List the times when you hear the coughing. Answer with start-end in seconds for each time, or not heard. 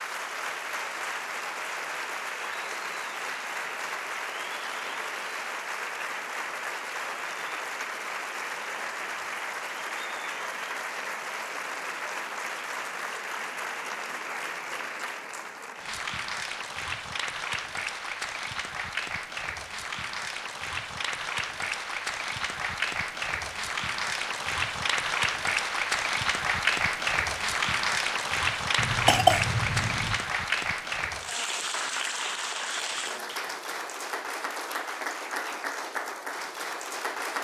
28.8-30.2.